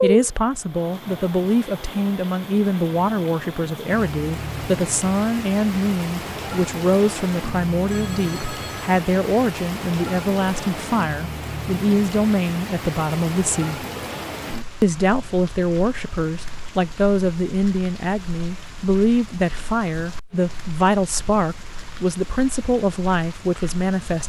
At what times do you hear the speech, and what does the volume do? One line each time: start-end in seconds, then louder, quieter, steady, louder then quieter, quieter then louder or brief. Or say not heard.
0.0-13.8 steady
14.8-24.2 steady.